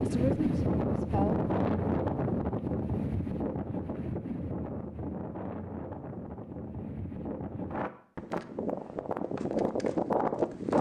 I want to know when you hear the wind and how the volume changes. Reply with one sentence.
The wind can be heard from 0.0 to 10.7 s, getting quieter then louder.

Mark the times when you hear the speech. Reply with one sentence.
You can hear the speech from 0.0 to 1.5 s.